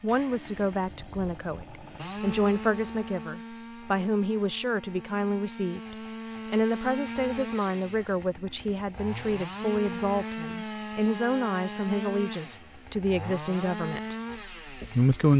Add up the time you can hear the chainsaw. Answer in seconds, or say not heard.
15 s.